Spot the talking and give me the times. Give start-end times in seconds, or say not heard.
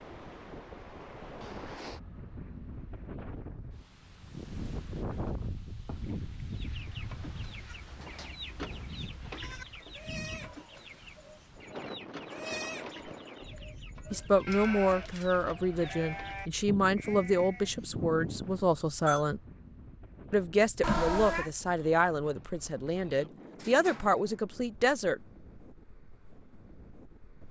14.1-19.4, 20.3-25.2.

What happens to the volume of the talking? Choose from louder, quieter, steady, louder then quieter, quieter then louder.
steady.